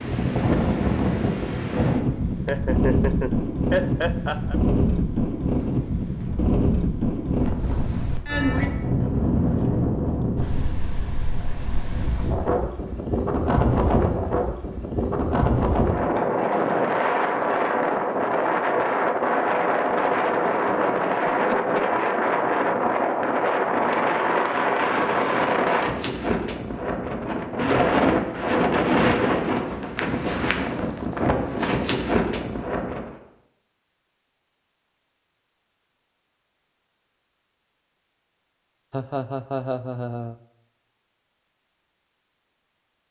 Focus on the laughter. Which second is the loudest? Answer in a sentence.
The volume of the laughter peaks at 4 seconds.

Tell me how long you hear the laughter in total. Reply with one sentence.
You can hear the laughter for 4 seconds altogether.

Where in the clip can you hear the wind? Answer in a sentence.
The wind can be heard from 0.0 to 33.1 s.